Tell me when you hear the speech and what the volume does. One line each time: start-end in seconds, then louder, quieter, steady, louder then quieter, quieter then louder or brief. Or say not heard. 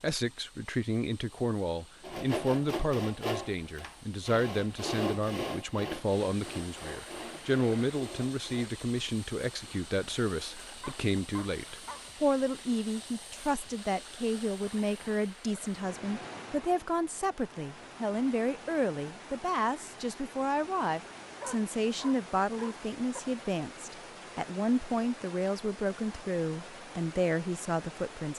0.0-28.3 steady.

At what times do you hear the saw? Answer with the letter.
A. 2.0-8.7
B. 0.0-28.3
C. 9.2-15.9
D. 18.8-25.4
A.